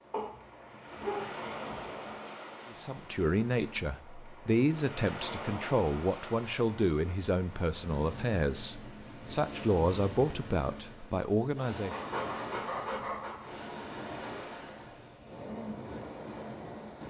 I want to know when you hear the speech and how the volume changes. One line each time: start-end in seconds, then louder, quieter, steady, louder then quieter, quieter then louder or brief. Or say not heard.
2.7-12.0 steady.